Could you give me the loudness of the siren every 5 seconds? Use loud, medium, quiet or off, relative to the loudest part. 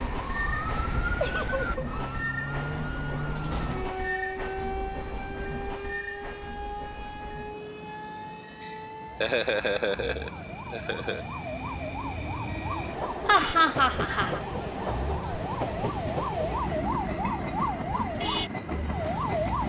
loud, medium, medium, loud.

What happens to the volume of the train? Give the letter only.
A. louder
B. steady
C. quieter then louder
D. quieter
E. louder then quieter
C.